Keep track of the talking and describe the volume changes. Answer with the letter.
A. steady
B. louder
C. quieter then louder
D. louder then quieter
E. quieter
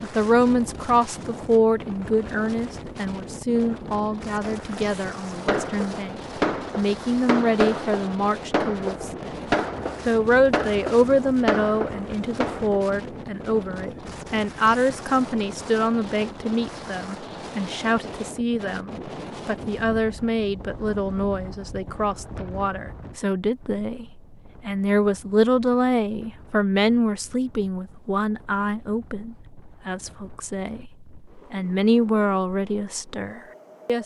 A.